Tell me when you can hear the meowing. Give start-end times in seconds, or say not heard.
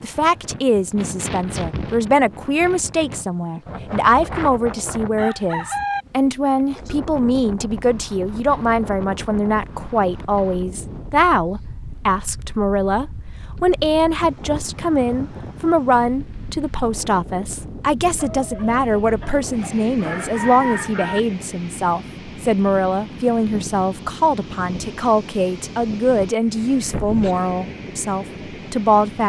not heard.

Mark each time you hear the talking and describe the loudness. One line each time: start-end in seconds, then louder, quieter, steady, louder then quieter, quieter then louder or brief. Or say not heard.
0.0-29.2 steady.